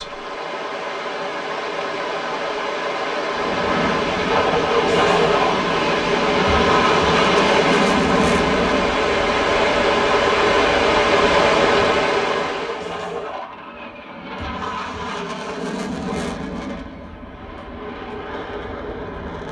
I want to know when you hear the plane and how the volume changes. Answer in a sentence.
The plane can be heard from 3.3 to 19.4 s, getting quieter.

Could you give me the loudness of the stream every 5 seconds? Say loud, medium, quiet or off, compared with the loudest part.
medium, loud, loud, off.